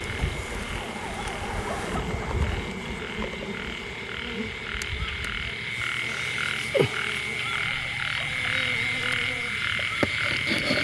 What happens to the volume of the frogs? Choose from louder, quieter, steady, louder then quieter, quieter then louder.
louder.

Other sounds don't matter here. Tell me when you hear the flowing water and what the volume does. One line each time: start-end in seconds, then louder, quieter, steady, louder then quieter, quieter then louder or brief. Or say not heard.
not heard.